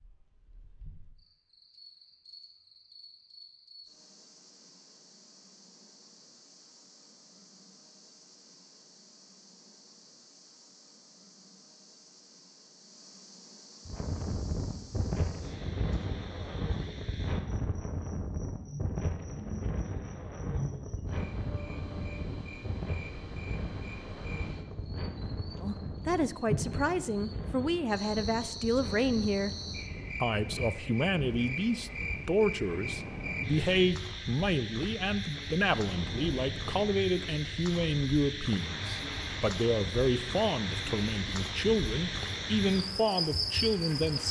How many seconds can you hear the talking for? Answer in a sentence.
The talking can be heard for 18 seconds in total.